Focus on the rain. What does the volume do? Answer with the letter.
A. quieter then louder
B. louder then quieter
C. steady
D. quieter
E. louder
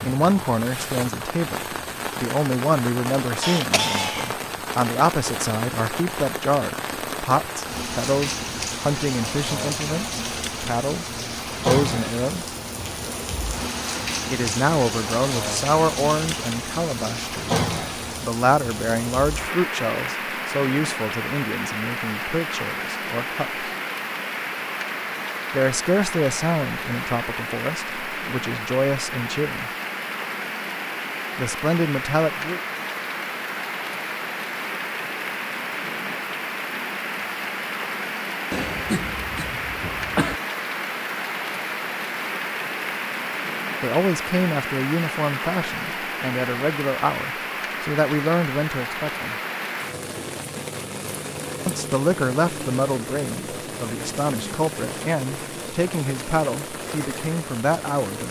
C.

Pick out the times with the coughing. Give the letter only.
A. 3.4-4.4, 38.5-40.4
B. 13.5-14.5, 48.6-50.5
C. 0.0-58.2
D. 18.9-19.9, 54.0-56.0
A.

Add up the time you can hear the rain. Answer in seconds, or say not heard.
58 s.